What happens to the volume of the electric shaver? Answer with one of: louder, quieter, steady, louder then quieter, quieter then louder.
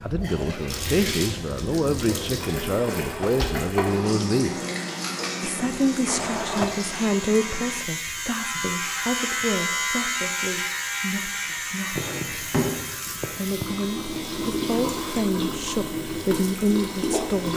louder then quieter.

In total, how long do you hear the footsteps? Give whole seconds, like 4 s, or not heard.
not heard.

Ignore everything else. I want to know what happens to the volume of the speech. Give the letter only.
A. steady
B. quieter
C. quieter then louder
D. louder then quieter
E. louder
C.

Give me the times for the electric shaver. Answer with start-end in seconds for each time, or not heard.
4.7-17.5.